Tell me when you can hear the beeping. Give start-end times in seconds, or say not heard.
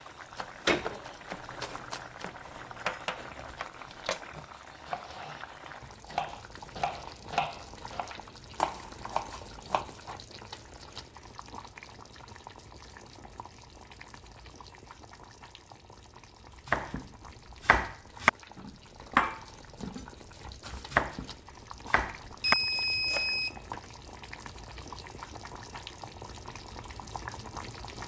22.2-23.9.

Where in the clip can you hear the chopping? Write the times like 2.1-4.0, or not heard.
0.3-10.2, 16.6-23.3.